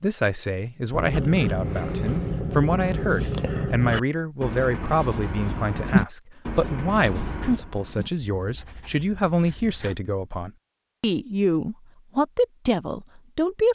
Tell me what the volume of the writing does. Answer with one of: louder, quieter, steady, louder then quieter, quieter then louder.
quieter.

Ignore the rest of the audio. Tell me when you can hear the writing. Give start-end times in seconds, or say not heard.
0.9-10.0.